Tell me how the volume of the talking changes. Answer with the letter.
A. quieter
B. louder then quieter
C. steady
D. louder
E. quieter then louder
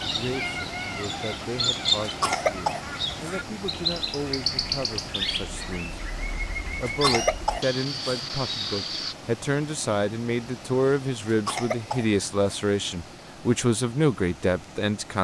D.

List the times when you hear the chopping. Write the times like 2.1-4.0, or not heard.
not heard.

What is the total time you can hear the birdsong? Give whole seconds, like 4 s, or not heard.
9 s.